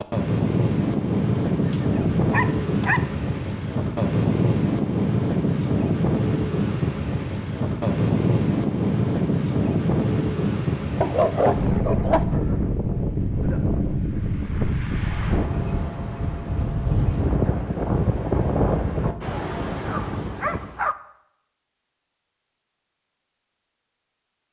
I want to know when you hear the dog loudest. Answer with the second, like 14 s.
11 s.